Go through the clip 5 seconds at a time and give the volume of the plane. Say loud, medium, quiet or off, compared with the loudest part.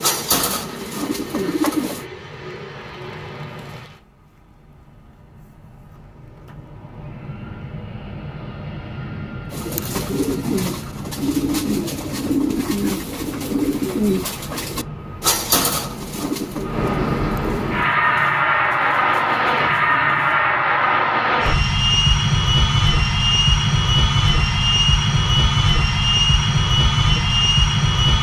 quiet, quiet, quiet, loud, loud, loud.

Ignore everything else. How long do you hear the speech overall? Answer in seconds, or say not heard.
not heard.